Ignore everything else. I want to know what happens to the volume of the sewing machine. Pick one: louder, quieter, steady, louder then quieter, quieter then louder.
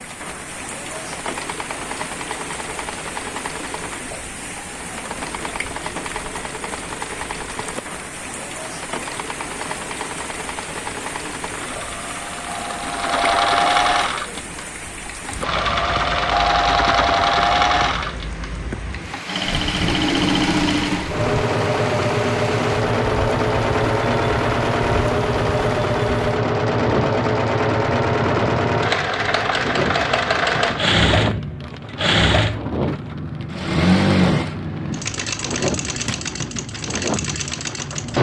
louder.